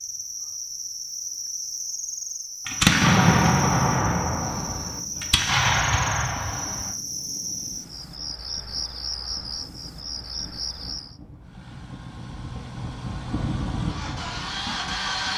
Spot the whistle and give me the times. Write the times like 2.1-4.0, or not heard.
not heard.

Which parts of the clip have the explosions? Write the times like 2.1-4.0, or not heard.
2.6-7.0.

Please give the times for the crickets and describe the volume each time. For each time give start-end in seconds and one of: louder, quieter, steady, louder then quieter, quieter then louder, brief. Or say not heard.
0.0-11.2 steady.